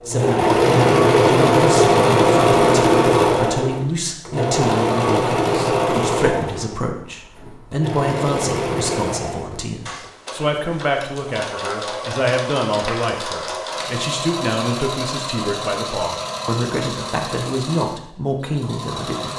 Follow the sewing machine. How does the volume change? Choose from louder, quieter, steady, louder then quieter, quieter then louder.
quieter.